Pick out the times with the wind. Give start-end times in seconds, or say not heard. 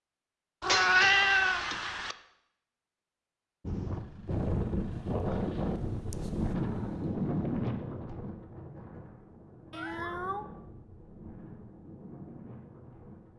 3.6-13.3.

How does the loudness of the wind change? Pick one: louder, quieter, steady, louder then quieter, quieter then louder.
quieter.